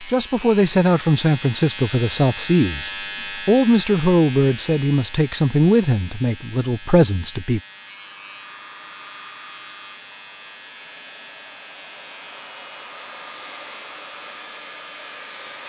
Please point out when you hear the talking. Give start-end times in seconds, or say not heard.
0.0-7.6.